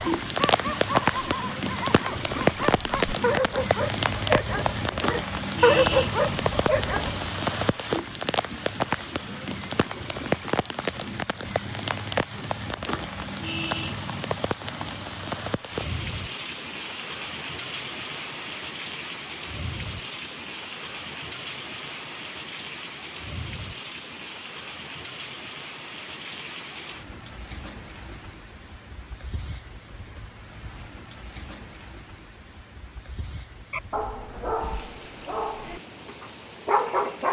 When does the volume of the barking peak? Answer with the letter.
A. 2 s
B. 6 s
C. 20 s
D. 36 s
B.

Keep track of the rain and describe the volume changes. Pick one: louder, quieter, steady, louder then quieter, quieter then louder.
quieter.